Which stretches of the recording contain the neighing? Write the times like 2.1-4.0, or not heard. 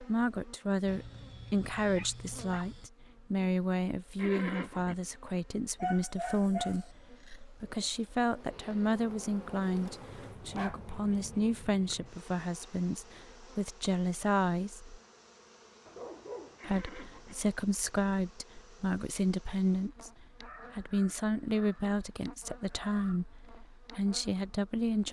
4.2-5.0, 16.6-17.4.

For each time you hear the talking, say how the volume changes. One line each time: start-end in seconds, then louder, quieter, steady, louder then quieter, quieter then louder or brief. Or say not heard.
0.0-15.0 steady
16.6-25.0 steady.